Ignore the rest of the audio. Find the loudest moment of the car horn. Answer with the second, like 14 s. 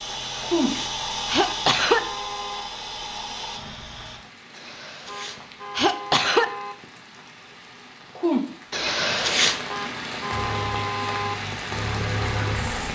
11 s.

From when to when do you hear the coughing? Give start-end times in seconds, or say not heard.
0.2-2.0, 4.5-6.5, 8.7-9.7.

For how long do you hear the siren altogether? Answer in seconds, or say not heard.
not heard.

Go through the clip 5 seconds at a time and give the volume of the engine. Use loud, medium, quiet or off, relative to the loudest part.
loud, off, loud.